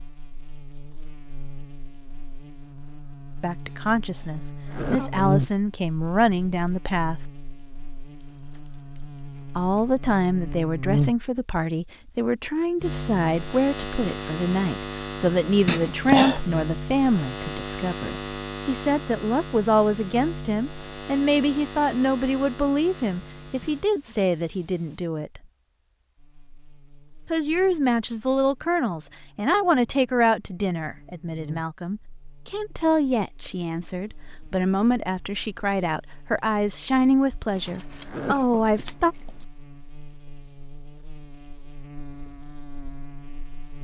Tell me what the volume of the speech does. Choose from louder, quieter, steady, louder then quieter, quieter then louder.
steady.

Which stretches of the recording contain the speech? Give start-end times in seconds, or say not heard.
3.4-7.2, 9.6-25.4, 27.2-39.1.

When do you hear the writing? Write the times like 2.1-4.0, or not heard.
not heard.